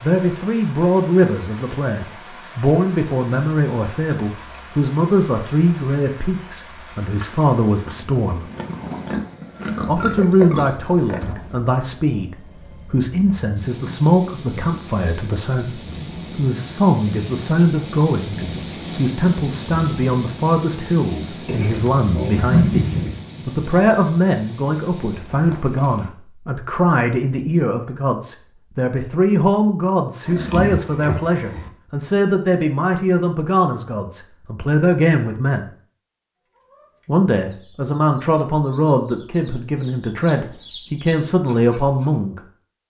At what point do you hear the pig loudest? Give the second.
23 s.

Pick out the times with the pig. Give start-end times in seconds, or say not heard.
8.6-11.3, 21.4-23.2, 30.2-31.7.